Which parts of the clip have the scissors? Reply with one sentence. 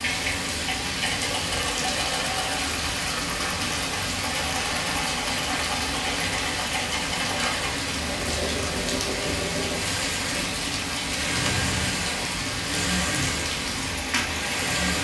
You can hear the scissors from 11.2 to 12.0 s.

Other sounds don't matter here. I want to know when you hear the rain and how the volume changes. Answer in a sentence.
You can hear the rain from 0.0 to 14.9 s, at a steady volume.